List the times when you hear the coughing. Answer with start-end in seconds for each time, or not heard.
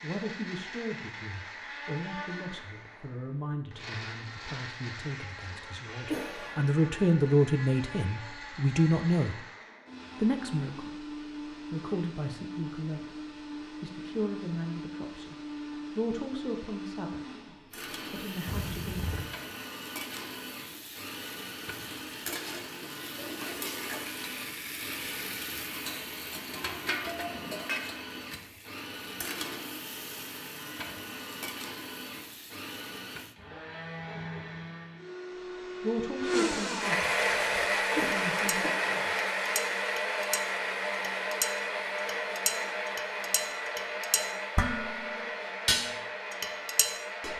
6.0-6.7, 18.4-19.3, 37.9-39.1.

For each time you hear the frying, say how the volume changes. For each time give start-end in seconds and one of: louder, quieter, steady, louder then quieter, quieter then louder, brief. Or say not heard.
17.7-33.4 louder then quieter.